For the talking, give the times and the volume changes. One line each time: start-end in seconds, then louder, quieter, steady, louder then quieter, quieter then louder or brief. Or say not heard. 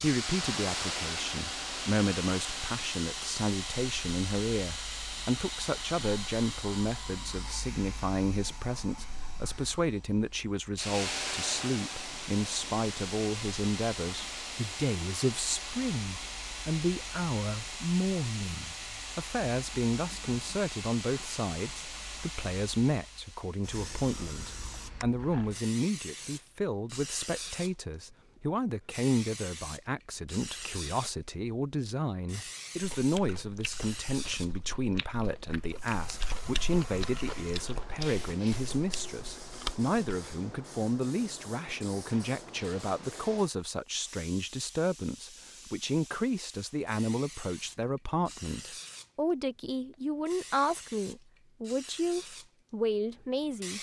0.0-53.7 steady.